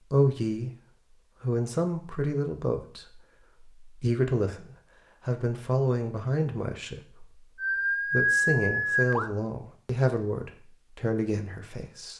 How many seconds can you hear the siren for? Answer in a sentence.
You can hear the siren for 2 seconds altogether.